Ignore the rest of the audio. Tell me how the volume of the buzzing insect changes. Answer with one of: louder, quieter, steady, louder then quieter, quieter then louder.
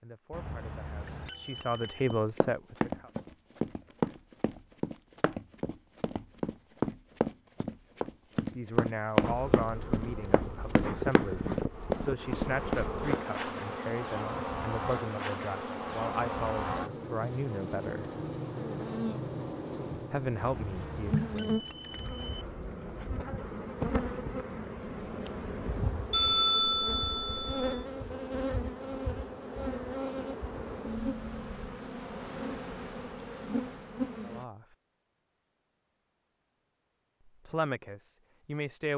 steady.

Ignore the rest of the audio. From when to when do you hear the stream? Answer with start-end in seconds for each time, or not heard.
not heard.